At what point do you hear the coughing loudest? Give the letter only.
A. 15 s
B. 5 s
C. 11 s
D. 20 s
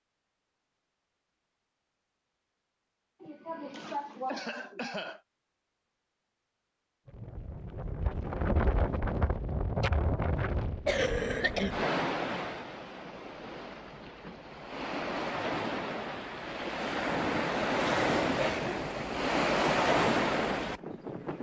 C.